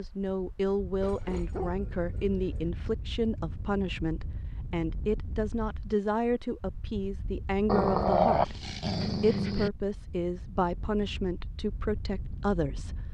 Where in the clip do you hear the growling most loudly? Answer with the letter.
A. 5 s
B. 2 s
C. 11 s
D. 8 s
D.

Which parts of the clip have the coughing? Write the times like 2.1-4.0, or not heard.
not heard.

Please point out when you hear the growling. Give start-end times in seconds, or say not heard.
1.0-2.7, 7.7-9.7.